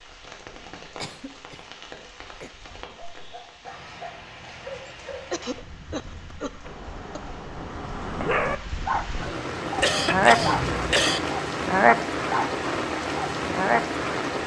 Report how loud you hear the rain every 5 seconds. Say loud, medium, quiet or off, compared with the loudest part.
quiet, medium, loud.